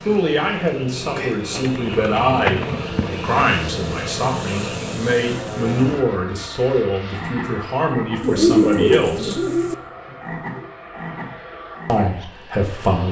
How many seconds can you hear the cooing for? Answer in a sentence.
You can hear the cooing for 3 seconds altogether.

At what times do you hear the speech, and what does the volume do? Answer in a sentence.
You can hear the speech from 0.1 to 9.4 s, at a steady volume; and briefly from 11.8 to 13.0 s.